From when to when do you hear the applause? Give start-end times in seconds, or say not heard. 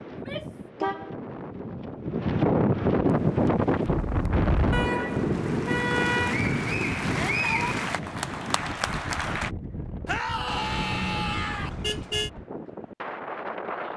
3.0-9.5.